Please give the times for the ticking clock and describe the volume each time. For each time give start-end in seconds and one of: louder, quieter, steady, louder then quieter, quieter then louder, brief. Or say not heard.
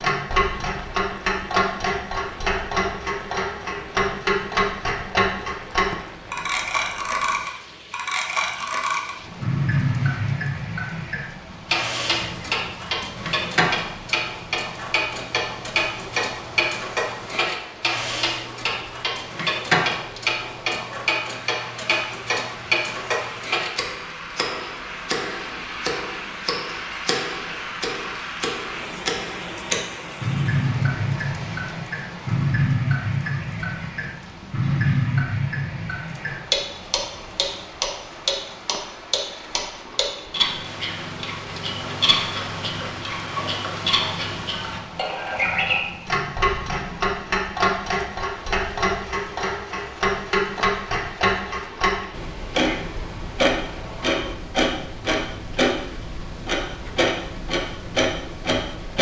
0.0-58.9 steady.